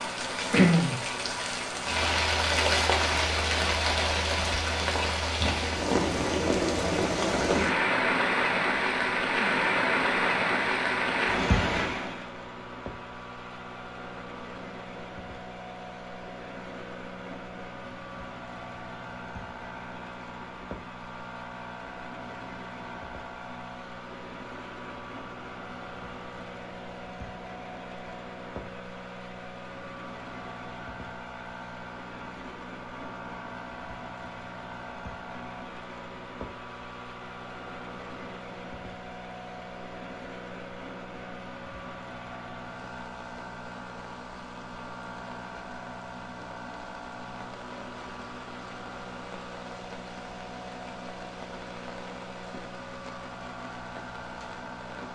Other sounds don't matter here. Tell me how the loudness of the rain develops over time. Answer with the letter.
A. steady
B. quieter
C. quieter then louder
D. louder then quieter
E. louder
B.